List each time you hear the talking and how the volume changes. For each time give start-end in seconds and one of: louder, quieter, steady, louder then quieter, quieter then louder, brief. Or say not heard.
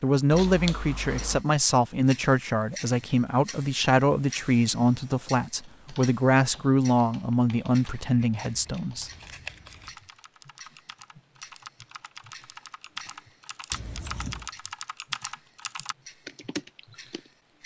0.0-9.1 steady.